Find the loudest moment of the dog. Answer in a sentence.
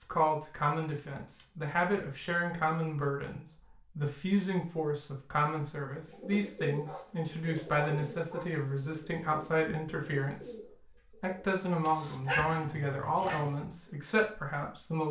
The volume of the dog peaks at 12 seconds.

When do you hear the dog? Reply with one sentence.
You can hear the dog from 0.6 to 1.4 s, from 6.8 to 8.5 s and from 11.8 to 13.6 s.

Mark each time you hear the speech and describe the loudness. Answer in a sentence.
You can hear the speech from 0.0 to 15.0 s, at a steady volume.